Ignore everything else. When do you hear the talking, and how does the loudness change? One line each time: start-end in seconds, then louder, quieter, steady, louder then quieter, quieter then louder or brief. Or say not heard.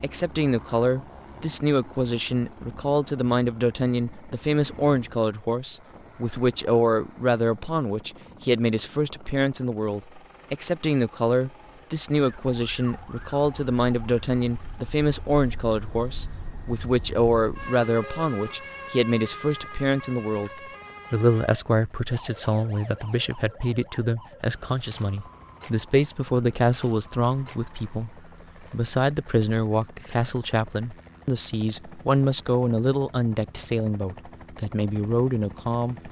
0.0-36.0 steady.